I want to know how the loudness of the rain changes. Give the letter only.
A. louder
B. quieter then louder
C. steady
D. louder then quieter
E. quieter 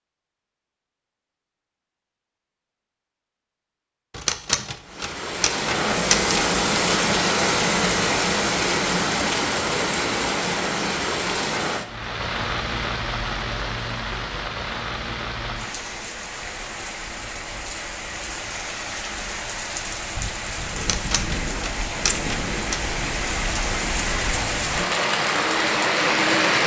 B.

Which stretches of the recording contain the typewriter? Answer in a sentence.
The typewriter can be heard from 4.1 to 6.5 s and from 20.8 to 22.8 s.